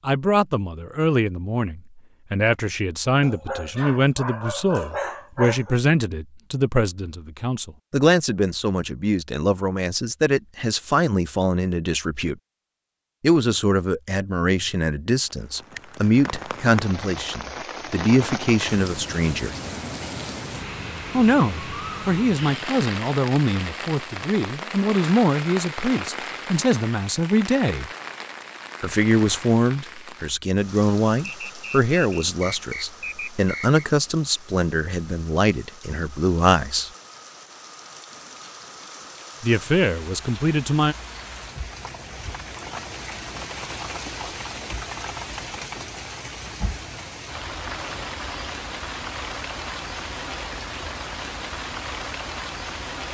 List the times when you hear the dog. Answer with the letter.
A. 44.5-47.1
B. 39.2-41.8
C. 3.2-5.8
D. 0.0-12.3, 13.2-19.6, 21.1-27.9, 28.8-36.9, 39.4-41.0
C.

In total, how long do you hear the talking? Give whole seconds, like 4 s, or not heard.
35 s.